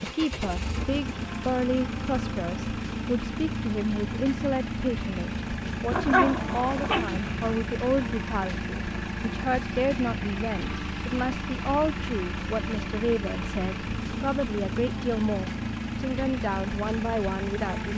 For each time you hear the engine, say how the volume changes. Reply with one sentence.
The engine can be heard from 0.0 to 17.9 s, at a steady volume.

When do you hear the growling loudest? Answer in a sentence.
The volume of the growling peaks at 6 seconds.